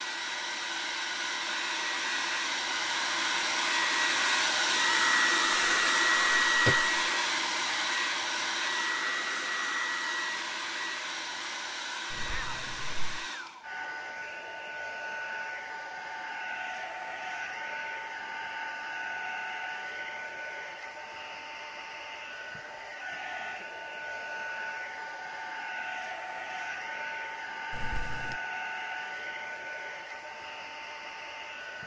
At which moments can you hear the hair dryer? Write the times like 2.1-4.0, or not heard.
0.0-31.8.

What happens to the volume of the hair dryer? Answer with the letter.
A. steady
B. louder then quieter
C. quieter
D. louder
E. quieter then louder
C.